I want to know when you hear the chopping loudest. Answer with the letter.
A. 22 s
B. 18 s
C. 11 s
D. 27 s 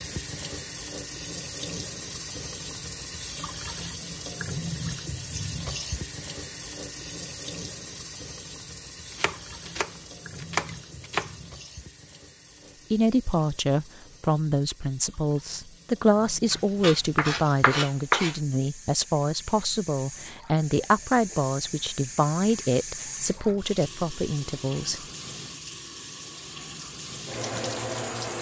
B.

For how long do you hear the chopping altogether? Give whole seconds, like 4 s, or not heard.
4 s.